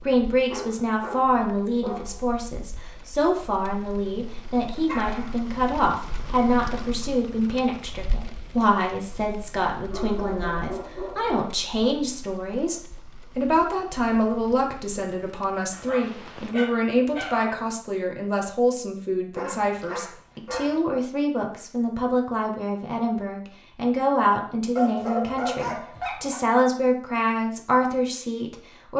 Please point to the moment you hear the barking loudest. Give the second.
25 s.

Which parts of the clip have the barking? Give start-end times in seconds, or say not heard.
0.5-2.2, 4.8-5.3, 9.9-11.5, 15.7-17.6, 19.3-20.8, 24.8-26.4.